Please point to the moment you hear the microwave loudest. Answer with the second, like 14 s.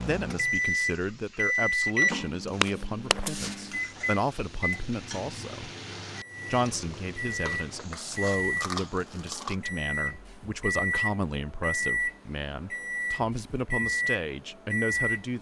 2 s.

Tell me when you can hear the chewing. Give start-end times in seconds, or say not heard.
7.9-9.6.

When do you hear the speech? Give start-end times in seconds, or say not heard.
0.1-5.7, 6.5-15.3.